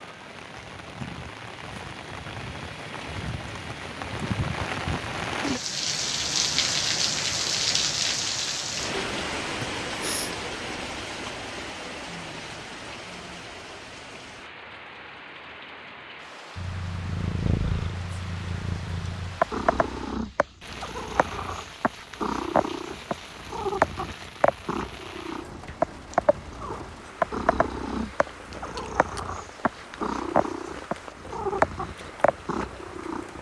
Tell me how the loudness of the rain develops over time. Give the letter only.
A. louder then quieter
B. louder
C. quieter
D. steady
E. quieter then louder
C.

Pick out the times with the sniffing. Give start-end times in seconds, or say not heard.
9.6-10.3.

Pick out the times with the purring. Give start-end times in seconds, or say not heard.
16.6-33.3.